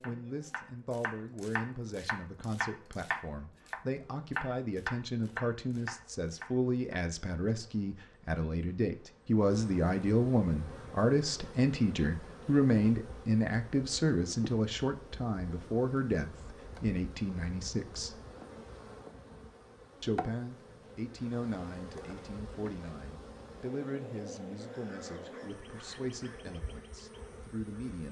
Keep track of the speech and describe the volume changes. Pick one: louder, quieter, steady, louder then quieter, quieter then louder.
louder then quieter.